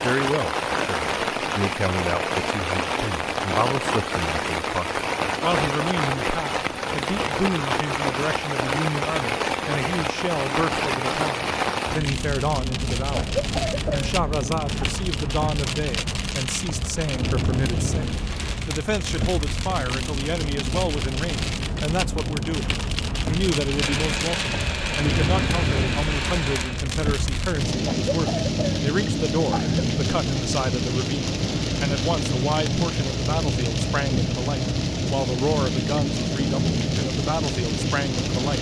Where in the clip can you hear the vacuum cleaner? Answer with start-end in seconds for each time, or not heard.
23.6-26.9.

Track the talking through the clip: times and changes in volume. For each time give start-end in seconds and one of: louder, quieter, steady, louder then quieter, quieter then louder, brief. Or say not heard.
0.0-38.5 steady.